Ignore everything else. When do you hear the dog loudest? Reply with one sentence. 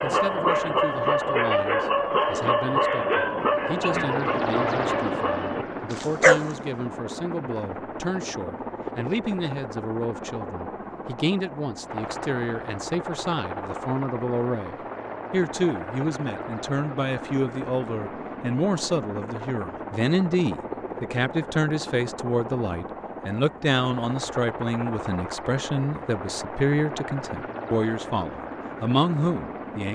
The volume of the dog peaks at 6 seconds.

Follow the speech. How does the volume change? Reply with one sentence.
The loudness of the speech goes up.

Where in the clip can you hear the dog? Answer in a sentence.
The dog can be heard from 0.0 to 6.6 s.